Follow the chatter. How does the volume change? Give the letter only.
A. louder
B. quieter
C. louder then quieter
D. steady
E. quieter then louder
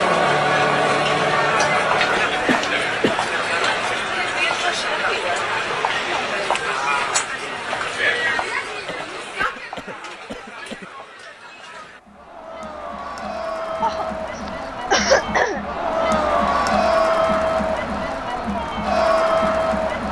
E.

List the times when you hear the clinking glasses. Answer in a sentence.
You can't hear the clinking glasses here.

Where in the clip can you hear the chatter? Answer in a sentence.
The chatter can be heard from 0.0 to 20.0 s.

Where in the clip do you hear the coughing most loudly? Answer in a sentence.
The loudest moment of the coughing is at 15 seconds.